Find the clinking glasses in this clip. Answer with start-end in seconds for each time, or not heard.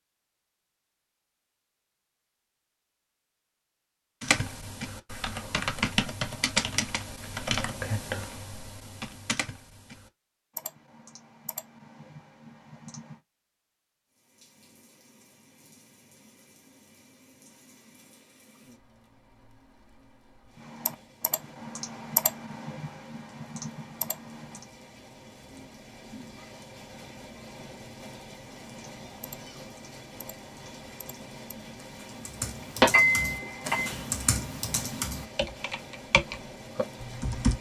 32.8-33.9.